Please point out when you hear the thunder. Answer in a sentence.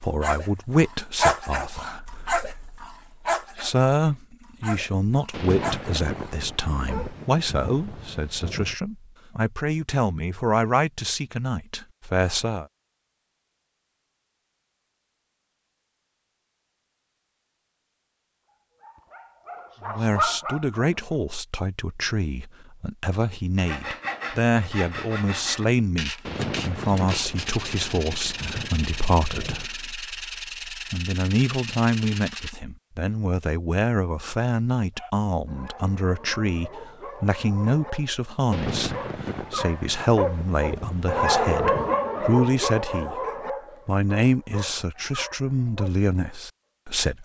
You can hear the thunder from 5.3 to 8.8 s, from 26.2 to 29.7 s and from 38.5 to 42.0 s.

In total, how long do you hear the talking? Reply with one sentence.
You can hear the talking for 39 seconds altogether.